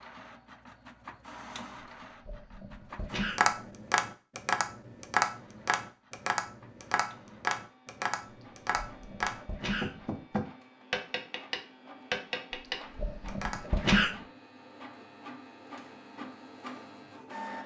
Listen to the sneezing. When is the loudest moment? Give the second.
14 s.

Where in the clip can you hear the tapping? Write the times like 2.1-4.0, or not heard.
3.4-13.8.